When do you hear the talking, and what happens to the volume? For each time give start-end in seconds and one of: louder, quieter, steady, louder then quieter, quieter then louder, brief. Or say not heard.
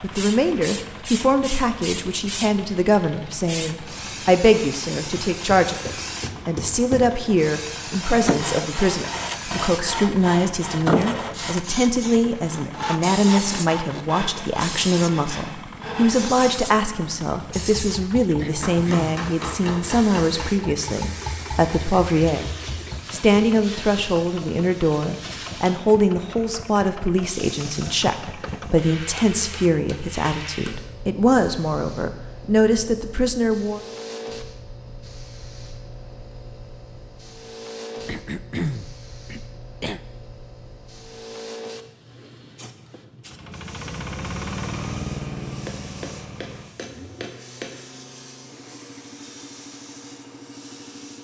0.0-22.5 steady
23.1-33.9 steady.